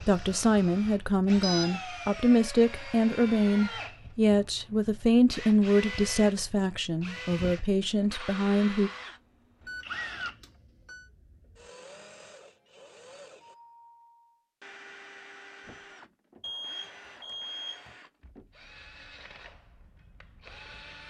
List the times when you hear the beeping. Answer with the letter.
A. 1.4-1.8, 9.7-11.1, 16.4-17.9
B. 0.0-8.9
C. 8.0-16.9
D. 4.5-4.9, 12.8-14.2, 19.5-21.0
A.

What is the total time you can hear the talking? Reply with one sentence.
You can hear the talking for 9 seconds altogether.